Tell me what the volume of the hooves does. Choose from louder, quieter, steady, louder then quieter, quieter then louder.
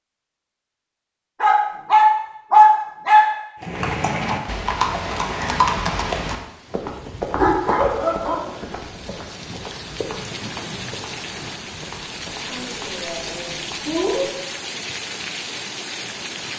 quieter.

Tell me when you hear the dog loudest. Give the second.
3 s.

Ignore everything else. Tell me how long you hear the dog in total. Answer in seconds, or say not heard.
5 s.